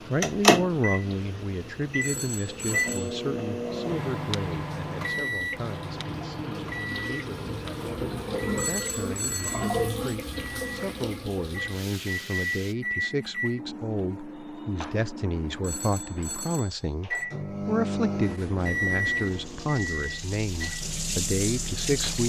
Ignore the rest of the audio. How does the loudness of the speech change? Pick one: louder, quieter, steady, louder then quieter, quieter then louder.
quieter then louder.